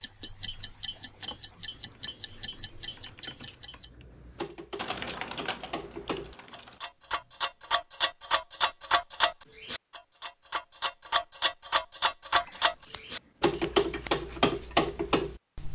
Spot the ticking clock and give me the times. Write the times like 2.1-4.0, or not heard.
0.0-15.7.